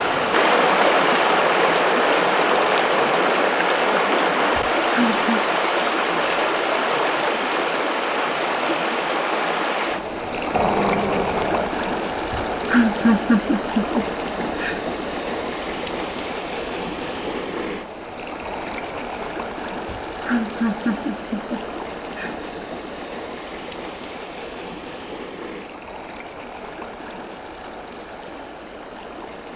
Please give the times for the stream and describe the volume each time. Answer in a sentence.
You can hear the stream from 0.0 to 29.5 s, getting quieter.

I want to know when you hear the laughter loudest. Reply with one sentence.
The volume of the laughter peaks at 13 seconds.